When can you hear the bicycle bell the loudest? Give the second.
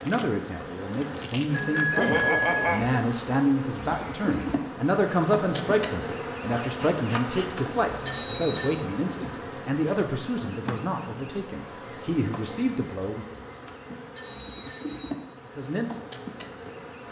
2 s.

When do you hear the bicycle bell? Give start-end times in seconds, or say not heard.
1.5-2.8, 7.3-8.8, 13.4-15.2.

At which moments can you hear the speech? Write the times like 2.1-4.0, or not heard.
0.0-13.2, 15.4-17.0.